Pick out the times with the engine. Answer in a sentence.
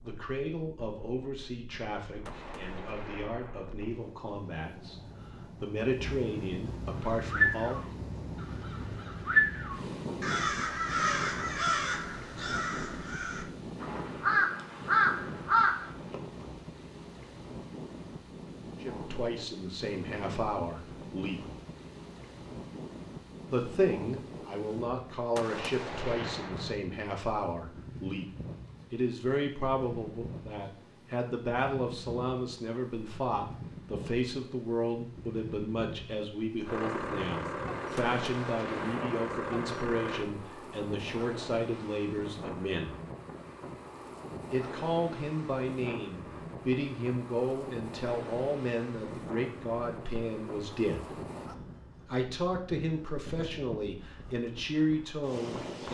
You can hear the engine from 36.6 to 40.2 s.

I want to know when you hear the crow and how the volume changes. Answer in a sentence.
The crow can be heard from 7.0 to 16.2 s, getting quieter then louder.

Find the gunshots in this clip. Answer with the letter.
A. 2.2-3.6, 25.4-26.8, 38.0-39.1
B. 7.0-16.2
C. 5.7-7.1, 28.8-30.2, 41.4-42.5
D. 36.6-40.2
A.